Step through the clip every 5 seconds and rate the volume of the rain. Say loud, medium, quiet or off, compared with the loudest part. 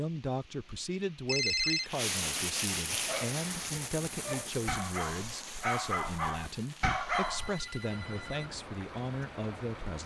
loud, medium.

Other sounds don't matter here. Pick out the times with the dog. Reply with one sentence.
You can hear the dog from 2.9 to 7.5 s.